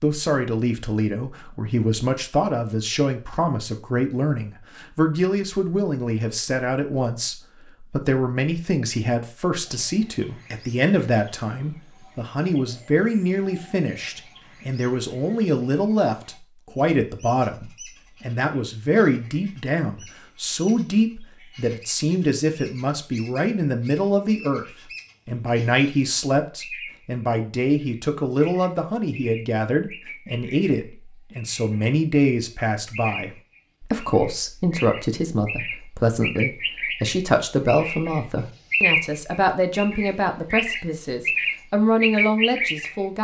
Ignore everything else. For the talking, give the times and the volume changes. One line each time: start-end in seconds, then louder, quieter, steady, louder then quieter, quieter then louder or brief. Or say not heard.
0.0-24.6 steady
25.2-43.1 steady.